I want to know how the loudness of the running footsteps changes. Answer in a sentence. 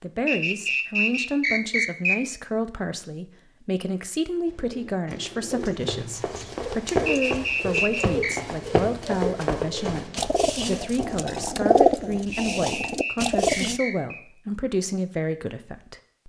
The loudness of the running footsteps goes up, then down.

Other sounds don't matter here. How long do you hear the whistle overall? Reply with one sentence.
The whistle can be heard for 5 seconds in total.